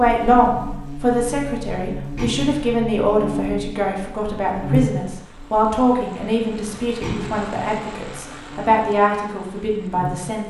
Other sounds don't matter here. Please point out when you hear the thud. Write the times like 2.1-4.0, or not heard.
2.1-2.6, 7.0-7.5.